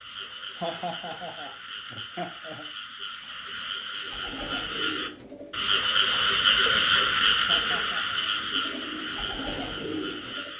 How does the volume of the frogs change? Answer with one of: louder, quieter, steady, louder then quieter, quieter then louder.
louder then quieter.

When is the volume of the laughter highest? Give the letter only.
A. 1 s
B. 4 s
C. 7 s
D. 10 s
A.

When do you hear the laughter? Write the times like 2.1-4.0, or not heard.
0.6-2.7, 7.5-8.2.